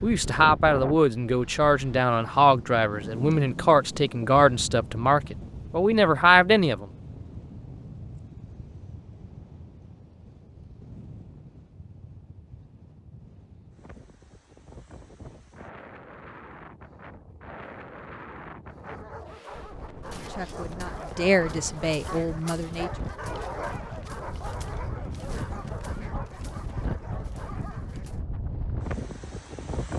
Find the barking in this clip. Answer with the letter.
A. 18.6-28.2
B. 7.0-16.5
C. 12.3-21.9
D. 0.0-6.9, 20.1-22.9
A.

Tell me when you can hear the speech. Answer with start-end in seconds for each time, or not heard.
0.0-6.9, 20.1-22.9.